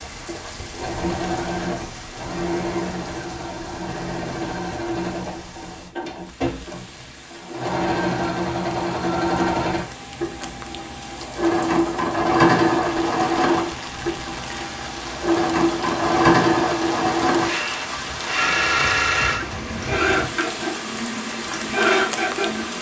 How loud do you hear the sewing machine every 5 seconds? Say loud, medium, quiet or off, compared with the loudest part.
medium, medium, loud, loud, loud.